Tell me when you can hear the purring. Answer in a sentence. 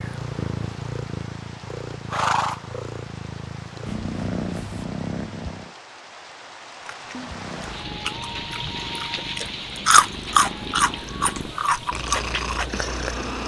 You can hear the purring from 0.0 to 5.7 s and from 7.1 to 13.4 s.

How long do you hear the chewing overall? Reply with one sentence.
The chewing can be heard for 6 seconds in total.